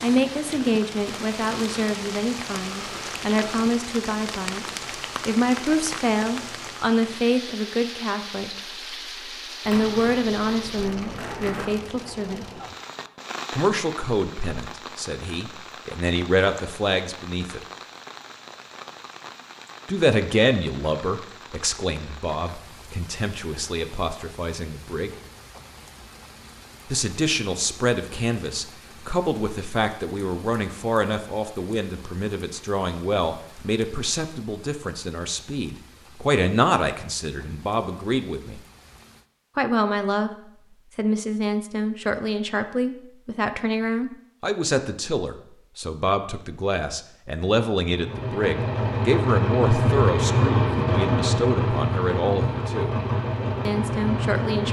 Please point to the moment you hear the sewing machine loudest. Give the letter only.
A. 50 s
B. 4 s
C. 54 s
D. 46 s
A.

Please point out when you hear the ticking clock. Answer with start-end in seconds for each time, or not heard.
not heard.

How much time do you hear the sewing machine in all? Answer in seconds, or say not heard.
7 s.